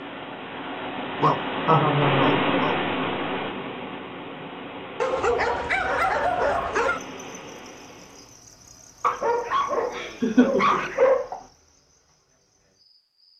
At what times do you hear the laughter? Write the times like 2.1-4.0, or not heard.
1.6-2.4, 9.4-11.3.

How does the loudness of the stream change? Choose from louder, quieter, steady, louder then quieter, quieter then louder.
louder then quieter.